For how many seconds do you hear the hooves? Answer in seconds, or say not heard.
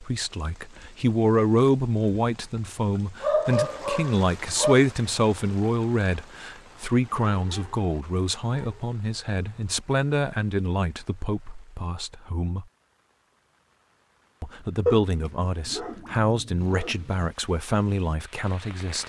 not heard.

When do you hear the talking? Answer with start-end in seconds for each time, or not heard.
0.0-12.7, 14.4-19.0.